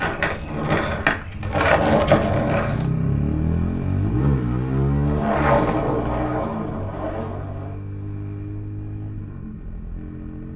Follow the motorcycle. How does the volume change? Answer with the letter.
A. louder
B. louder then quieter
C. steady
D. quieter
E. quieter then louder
B.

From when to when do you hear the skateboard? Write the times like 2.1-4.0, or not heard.
0.0-2.9, 5.0-7.8.